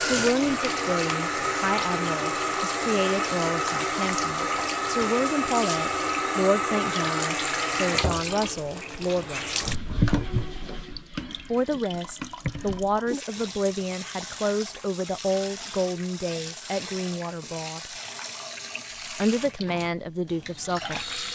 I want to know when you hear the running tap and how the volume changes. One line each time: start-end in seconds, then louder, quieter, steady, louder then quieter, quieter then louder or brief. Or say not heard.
0.0-21.2 quieter.